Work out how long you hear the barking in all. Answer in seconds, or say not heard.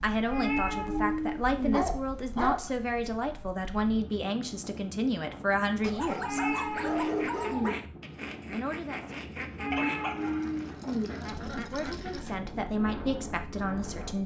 6 s.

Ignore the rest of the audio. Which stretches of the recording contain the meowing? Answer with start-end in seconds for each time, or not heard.
0.3-1.8, 6.2-7.8, 9.6-11.1.